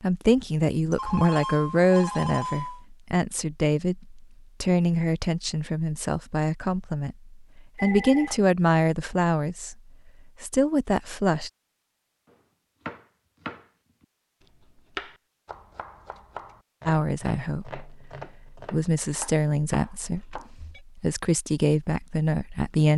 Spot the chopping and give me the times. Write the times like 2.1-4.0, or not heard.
12.2-20.5.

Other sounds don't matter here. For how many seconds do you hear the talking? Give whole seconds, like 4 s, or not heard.
17 s.